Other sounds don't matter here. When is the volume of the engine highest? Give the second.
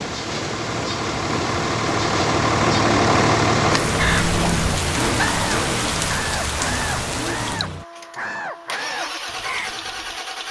3 s.